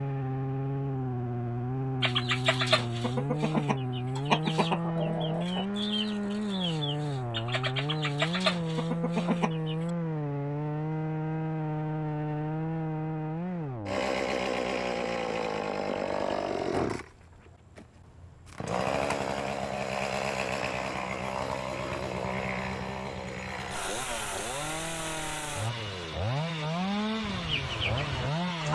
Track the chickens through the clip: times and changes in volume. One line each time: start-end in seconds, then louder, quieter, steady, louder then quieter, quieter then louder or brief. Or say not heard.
2.0-9.9 quieter then louder
27.2-28.7 brief.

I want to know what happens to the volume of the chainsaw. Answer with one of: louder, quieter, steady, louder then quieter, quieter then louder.
steady.